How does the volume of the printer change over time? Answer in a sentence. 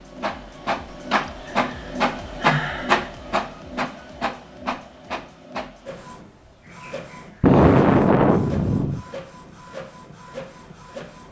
The volume of the printer goes down.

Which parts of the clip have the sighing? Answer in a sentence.
You can hear the sighing from 1.2 to 3.1 s and from 7.4 to 9.1 s.